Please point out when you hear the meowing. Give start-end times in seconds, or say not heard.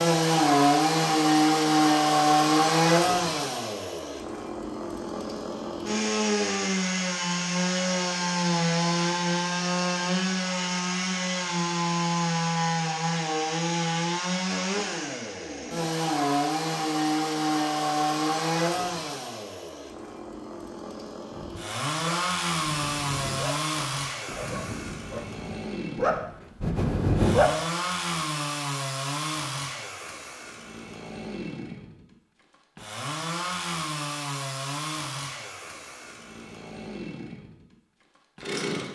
not heard.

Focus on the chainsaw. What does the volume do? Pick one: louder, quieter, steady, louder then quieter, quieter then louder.
quieter.